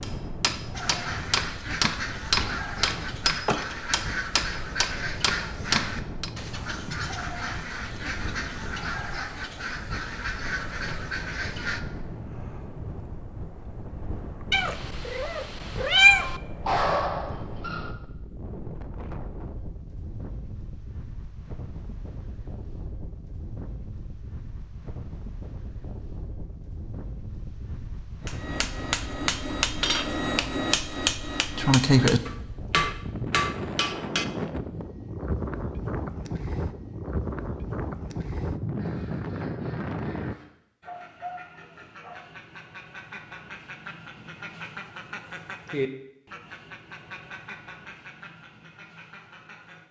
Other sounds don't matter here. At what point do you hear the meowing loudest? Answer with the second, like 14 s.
16 s.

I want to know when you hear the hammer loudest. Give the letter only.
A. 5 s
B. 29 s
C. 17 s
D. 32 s
D.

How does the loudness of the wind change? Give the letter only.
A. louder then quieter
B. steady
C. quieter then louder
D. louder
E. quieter
D.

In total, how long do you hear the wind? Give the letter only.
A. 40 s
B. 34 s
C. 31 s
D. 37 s
A.